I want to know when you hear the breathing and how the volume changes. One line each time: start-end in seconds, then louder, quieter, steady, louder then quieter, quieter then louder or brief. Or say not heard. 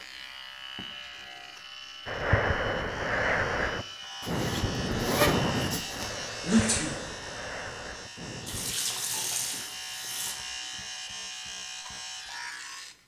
2.0-8.8 quieter.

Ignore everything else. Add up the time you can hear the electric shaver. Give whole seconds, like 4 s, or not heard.
13 s.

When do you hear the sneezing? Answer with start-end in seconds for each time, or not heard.
6.4-7.0.